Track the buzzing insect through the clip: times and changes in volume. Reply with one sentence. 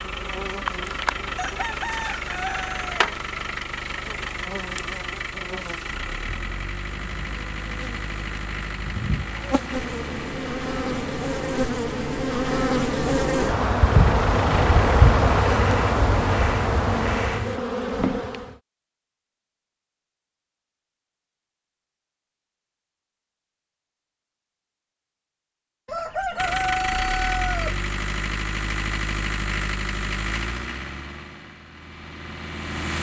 The buzzing insect can be heard from 0.0 to 18.6 s, getting quieter then louder.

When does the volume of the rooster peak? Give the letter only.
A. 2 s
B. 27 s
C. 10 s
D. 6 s
B.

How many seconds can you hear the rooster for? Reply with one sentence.
The rooster can be heard for 4 seconds in total.